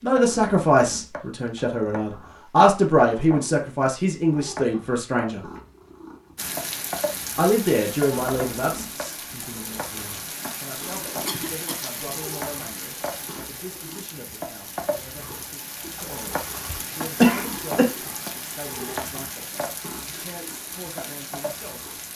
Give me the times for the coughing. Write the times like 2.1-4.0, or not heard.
16.6-17.9.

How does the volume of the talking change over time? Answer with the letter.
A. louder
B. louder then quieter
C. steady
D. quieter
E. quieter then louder
D.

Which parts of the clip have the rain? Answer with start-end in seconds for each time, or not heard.
6.3-22.1.